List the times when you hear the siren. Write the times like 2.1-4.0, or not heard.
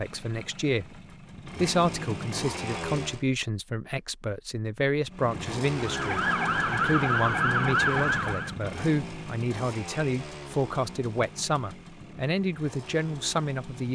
5.7-8.6.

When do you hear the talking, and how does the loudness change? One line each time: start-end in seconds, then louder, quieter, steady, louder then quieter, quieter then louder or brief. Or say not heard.
0.0-13.9 steady.